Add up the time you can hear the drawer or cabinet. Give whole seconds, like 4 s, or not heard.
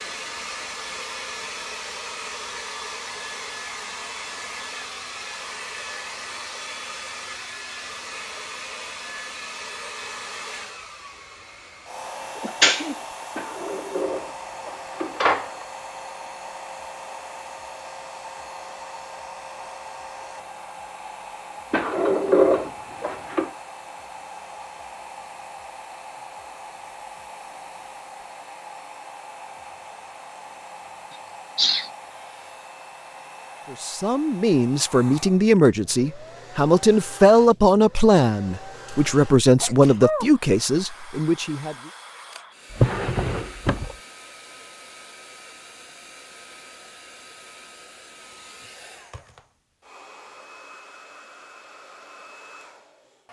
5 s.